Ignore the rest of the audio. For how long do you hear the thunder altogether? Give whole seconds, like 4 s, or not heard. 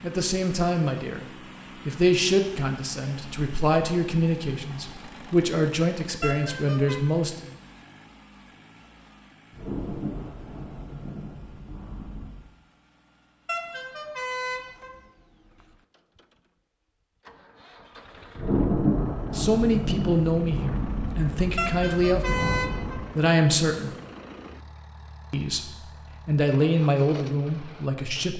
8 s.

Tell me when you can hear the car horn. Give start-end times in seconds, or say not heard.
6.2-7.0, 13.4-14.9, 21.6-23.0.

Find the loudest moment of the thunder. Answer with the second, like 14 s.
19 s.